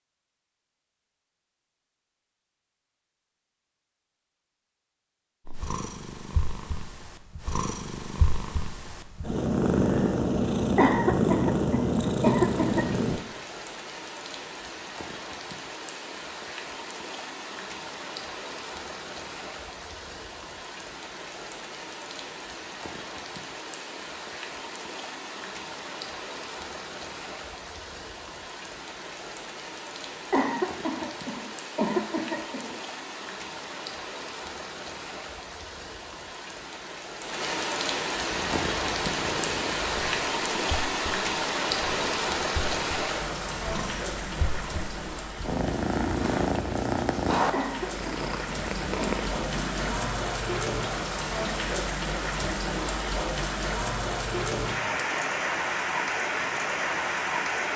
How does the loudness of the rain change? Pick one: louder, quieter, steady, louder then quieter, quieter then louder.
louder.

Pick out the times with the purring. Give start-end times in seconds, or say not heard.
5.5-13.2, 38.2-50.1.